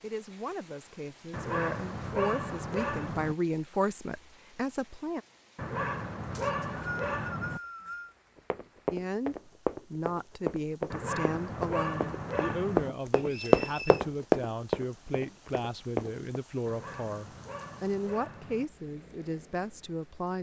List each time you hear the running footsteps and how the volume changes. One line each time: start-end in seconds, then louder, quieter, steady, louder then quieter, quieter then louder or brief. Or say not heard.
8.3-16.3 louder then quieter.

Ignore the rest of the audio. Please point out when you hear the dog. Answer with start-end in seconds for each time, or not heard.
1.3-3.4, 5.5-7.6, 10.9-12.9, 16.6-18.6.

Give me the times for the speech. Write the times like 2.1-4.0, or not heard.
0.0-5.2, 8.9-20.3.